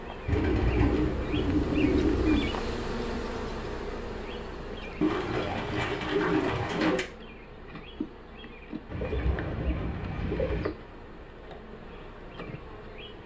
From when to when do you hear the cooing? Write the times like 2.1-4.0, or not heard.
0.2-2.5, 5.0-7.0, 8.8-10.7.